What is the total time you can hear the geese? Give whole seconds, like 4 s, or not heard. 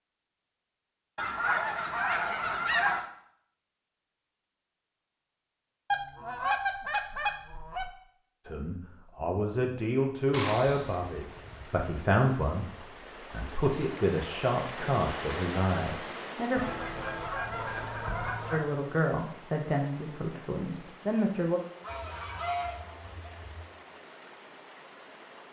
9 s.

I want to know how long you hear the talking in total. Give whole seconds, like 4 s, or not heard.
11 s.